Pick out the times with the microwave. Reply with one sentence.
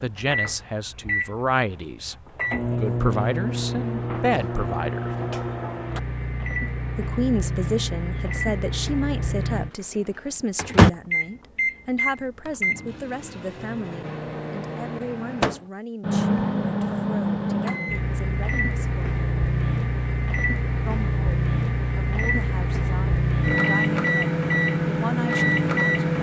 The microwave can be heard from 0.0 to 26.1 s.